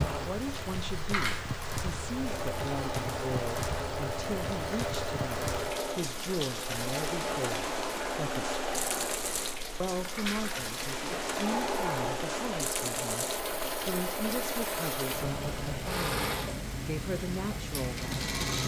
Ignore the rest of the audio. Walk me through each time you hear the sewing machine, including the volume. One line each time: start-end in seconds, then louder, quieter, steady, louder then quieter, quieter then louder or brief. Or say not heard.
0.0-18.6 steady.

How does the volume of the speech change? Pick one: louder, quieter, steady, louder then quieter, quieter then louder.
steady.